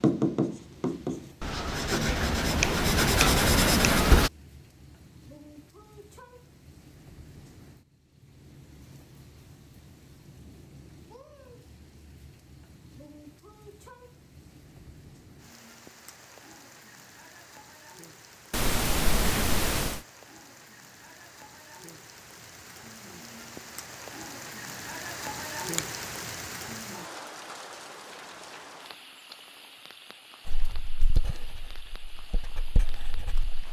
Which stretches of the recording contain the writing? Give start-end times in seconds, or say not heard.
0.0-4.3, 30.4-33.6.